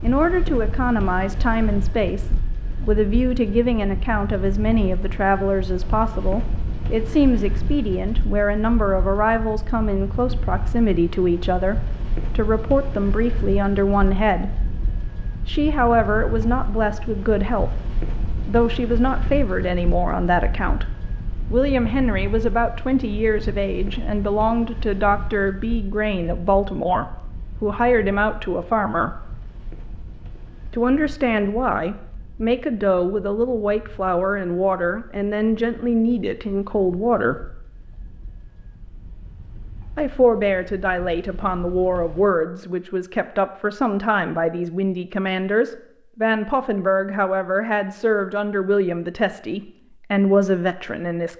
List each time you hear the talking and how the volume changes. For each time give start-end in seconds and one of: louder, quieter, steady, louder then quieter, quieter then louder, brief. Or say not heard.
0.0-14.6 steady
15.4-29.3 steady
30.7-37.6 steady
40.0-51.3 steady.